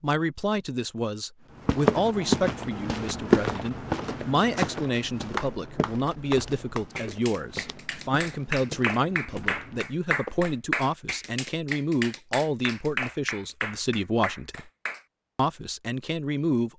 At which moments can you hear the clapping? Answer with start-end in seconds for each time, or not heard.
4.5-15.1.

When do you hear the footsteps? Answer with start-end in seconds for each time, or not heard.
1.6-10.5.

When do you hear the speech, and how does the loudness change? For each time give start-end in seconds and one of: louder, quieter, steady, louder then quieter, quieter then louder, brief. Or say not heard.
0.0-14.7 steady
15.3-16.7 brief.